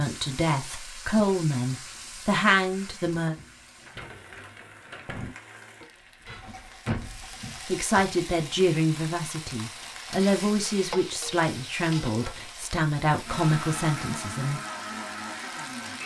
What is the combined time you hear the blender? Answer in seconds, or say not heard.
3 s.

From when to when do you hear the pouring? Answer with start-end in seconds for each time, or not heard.
not heard.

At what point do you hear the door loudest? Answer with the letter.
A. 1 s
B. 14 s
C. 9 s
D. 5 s
D.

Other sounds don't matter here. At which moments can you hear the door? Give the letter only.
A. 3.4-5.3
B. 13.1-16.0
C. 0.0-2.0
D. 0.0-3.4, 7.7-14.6
A.